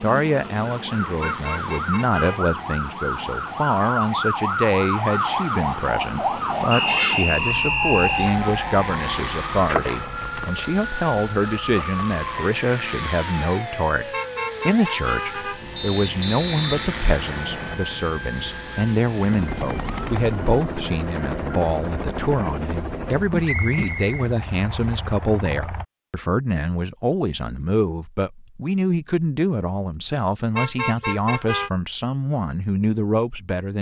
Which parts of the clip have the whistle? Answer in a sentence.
You can hear the whistle from 6.7 to 8.3 s, from 15.8 to 17.8 s and from 23.4 to 25.0 s.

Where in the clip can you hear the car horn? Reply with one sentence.
You can hear the car horn from 1.2 to 2.5 s, from 14.1 to 15.6 s and from 30.6 to 31.7 s.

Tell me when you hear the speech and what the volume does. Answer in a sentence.
You can hear the speech from 0.0 to 33.7 s, at a steady volume.